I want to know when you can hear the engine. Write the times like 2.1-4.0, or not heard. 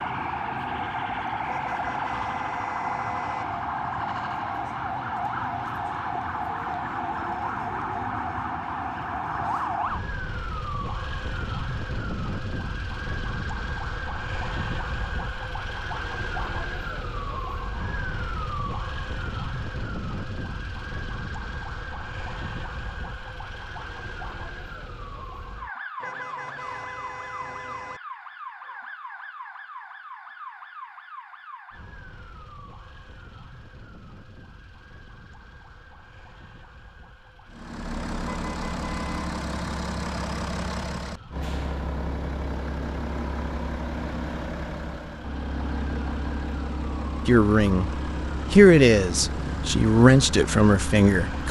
37.5-51.4.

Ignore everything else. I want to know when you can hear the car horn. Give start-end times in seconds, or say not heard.
1.4-3.5, 26.0-28.0, 38.5-39.2.